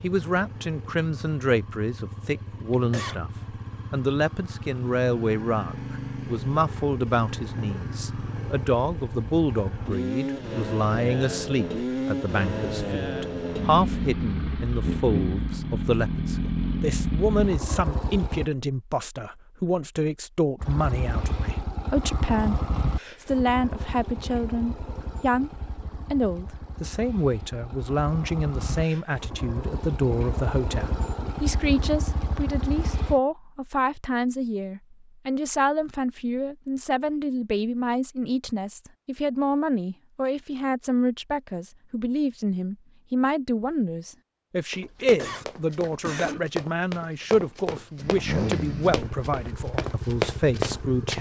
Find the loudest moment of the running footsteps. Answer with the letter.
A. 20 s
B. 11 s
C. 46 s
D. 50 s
D.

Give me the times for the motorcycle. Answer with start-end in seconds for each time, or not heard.
0.0-18.5, 20.6-33.2, 48.0-51.1.